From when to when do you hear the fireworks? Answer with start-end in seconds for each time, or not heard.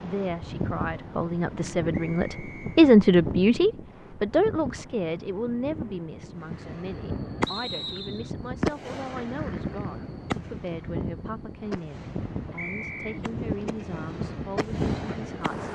6.4-15.7.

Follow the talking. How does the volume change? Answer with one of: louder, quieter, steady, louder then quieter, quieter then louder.
quieter.